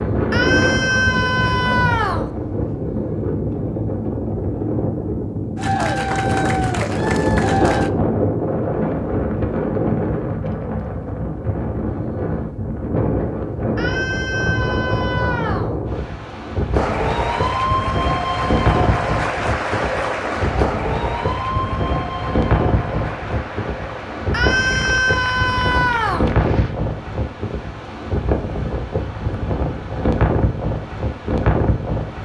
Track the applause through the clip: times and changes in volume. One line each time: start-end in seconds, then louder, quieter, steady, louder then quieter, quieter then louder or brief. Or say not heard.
5.5-7.9 brief
16.7-26.8 quieter.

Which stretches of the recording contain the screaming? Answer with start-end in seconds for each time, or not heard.
0.3-2.3, 13.8-15.8, 24.3-26.3.